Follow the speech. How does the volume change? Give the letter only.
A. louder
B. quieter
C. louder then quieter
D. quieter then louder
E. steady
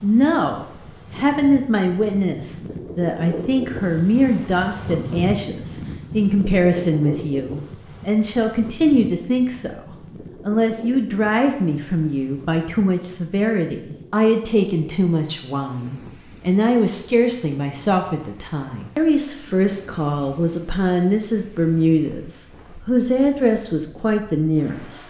E.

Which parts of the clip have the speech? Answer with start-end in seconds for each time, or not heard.
0.0-9.8, 10.4-25.0.